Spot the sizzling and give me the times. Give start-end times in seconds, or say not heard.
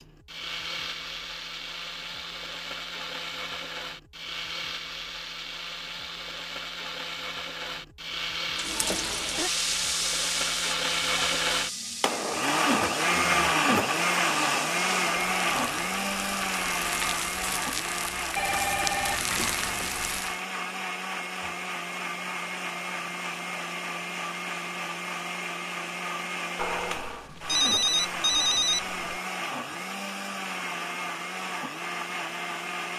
8.6-20.4.